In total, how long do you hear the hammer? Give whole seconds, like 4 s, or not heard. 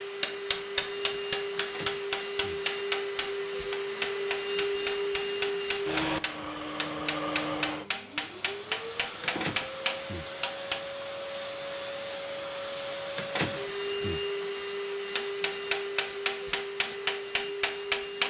14 s.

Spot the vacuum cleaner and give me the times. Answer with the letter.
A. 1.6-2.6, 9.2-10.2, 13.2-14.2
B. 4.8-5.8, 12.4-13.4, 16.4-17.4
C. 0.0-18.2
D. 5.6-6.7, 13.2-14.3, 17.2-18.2
C.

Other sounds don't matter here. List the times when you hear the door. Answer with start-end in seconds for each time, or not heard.
1.6-2.6, 9.2-10.2, 13.2-14.2.